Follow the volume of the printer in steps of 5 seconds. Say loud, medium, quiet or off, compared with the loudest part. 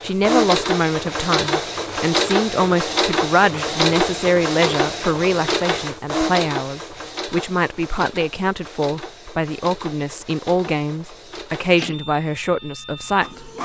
loud, medium, quiet.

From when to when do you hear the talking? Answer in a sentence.
You can hear the talking from 0.0 to 13.5 s.